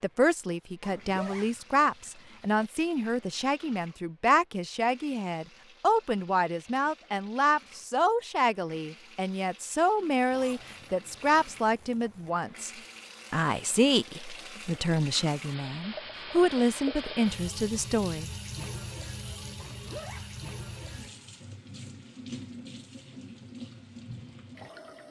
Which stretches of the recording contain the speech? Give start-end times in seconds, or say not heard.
0.0-12.7, 13.3-18.3.